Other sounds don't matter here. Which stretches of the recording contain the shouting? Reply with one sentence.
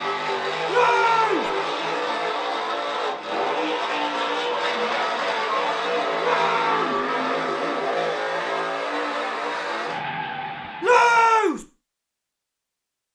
The shouting can be heard from 0.7 to 1.5 s, from 6.2 to 6.8 s and from 10.8 to 11.7 s.